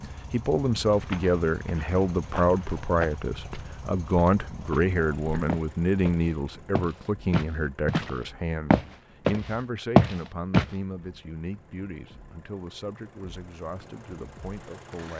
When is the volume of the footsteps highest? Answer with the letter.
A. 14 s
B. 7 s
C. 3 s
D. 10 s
D.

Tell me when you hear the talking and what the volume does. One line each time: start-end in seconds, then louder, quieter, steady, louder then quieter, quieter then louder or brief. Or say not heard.
0.0-15.1 quieter.